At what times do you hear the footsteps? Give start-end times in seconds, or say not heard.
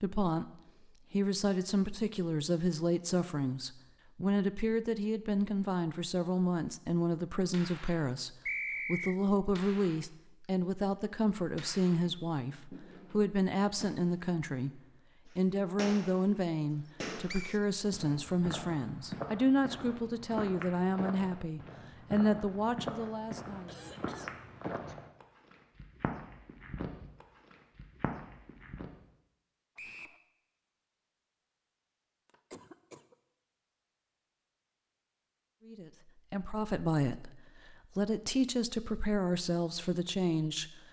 17.2-29.1.